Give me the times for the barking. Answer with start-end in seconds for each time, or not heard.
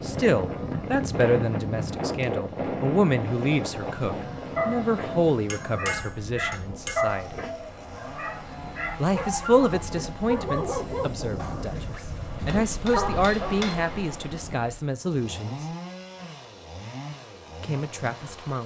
4.2-13.7.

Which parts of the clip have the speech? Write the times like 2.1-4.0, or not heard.
0.0-7.5, 9.0-15.7, 17.6-18.6.